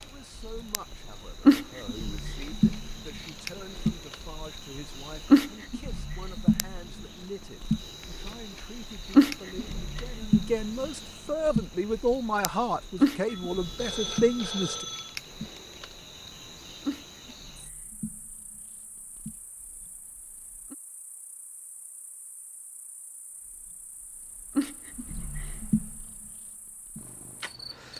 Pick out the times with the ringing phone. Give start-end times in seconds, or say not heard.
13.2-15.2.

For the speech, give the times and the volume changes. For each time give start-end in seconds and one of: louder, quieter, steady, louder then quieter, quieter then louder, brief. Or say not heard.
0.0-14.8 louder.